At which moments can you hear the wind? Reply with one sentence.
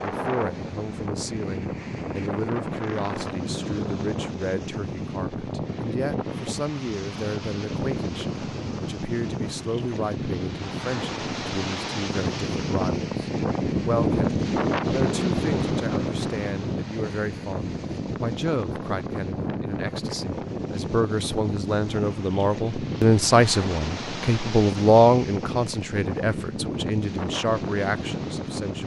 The wind can be heard from 0.0 to 28.8 s.